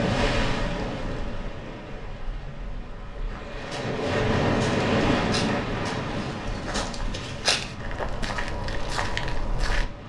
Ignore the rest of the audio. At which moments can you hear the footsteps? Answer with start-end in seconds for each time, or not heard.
3.2-9.9.